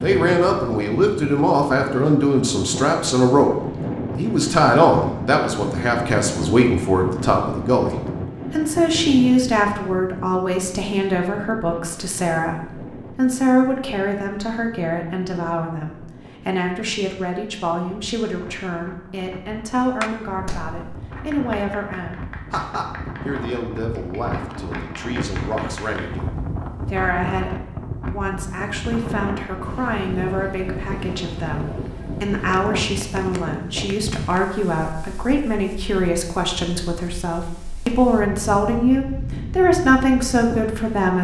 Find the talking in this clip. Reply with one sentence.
The talking can be heard from 0.0 to 41.1 s.